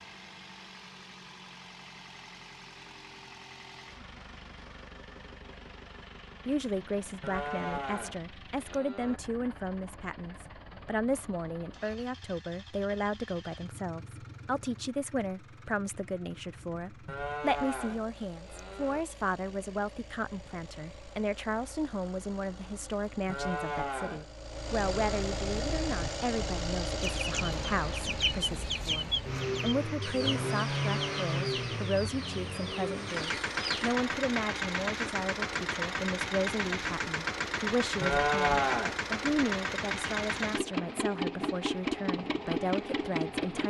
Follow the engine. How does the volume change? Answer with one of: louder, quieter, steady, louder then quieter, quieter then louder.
louder.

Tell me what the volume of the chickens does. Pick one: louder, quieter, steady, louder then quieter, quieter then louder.
quieter.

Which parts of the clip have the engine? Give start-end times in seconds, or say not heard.
0.0-43.6.